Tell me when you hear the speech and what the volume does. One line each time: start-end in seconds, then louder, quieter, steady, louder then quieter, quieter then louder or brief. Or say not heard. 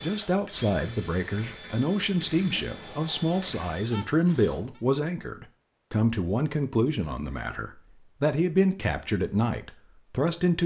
0.0-10.6 steady.